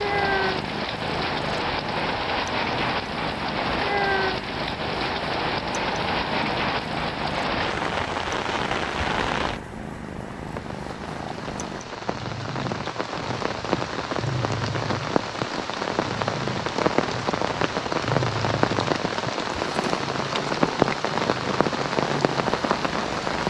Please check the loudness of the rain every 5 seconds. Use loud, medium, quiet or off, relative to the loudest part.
loud, loud, medium, loud, loud.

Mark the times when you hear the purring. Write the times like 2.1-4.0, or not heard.
0.0-23.4.